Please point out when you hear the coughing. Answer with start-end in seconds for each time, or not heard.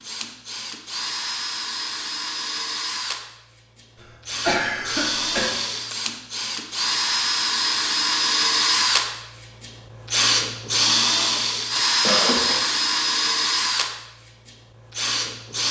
4.0-5.5, 12.1-12.6.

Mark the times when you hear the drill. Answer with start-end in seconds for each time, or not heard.
0.0-15.6.